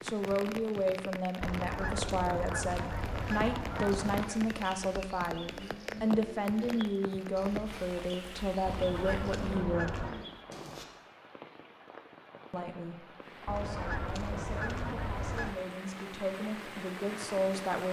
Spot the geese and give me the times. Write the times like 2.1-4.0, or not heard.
1.4-4.3, 8.7-10.2, 13.4-15.6.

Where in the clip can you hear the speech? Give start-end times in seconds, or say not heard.
0.0-10.1, 12.5-17.8.